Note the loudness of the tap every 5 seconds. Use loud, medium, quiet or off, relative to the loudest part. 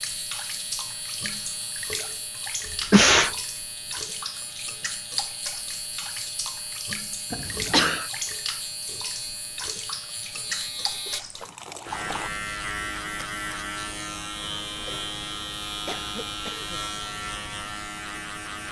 loud, loud, loud, off.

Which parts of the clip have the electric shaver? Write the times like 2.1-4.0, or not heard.
0.0-18.6.